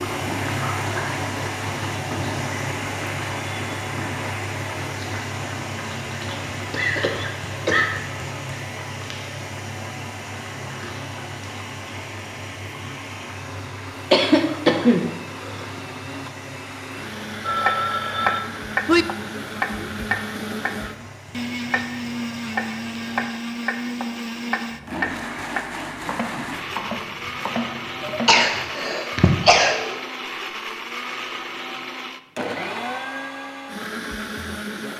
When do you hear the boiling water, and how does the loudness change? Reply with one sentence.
The boiling water can be heard from 0.0 to 23.2 s, getting quieter.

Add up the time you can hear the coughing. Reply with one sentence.
You can hear the coughing for 5 seconds altogether.